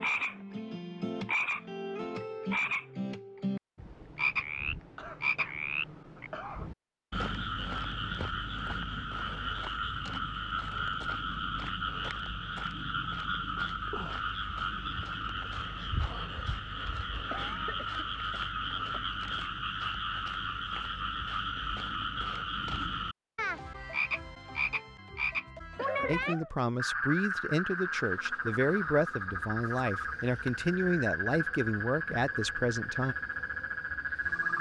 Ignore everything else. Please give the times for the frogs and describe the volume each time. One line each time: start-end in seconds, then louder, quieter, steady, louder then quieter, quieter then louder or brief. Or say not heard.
0.0-34.5 steady.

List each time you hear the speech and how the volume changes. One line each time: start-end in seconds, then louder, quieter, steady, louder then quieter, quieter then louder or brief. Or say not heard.
26.1-33.1 steady.